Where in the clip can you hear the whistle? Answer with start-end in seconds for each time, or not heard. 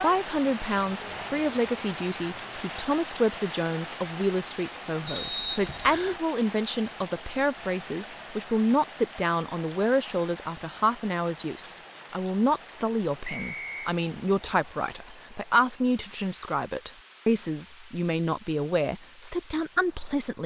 5.0-6.2, 13.2-13.9.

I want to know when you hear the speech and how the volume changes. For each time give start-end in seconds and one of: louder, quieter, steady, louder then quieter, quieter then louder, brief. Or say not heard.
0.0-20.4 steady.